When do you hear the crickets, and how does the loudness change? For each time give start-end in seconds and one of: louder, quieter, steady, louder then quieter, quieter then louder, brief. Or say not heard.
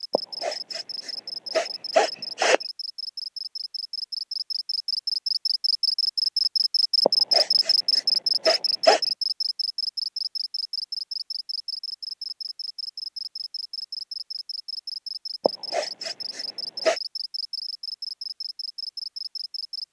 0.0-19.8 louder then quieter.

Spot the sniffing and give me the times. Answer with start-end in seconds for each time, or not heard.
0.1-2.6, 7.0-9.0, 15.4-17.0.